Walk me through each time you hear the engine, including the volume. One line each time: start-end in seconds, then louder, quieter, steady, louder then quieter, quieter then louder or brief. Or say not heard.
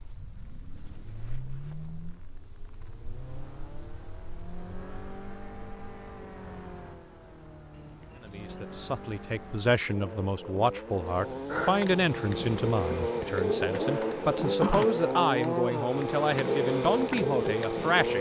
0.0-18.1 louder.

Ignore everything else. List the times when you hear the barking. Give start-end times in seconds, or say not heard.
not heard.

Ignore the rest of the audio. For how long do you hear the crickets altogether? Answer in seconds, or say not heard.
18 s.